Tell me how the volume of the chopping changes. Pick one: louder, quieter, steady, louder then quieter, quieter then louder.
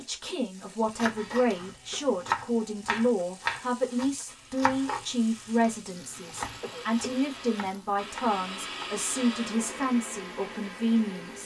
quieter.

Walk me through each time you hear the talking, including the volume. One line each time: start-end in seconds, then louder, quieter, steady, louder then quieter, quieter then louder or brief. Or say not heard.
0.0-11.4 steady.